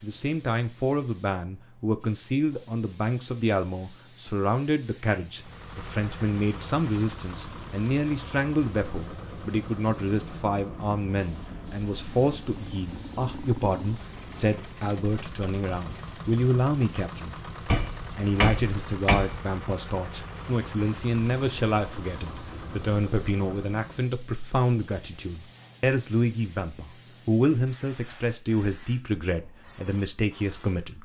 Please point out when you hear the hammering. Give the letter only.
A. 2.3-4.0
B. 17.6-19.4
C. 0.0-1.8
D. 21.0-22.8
B.